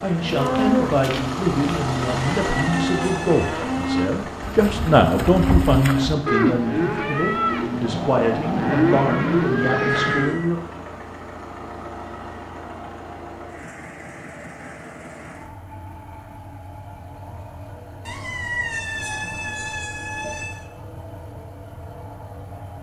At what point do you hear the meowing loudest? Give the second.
19 s.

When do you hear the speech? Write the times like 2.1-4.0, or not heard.
0.0-10.6.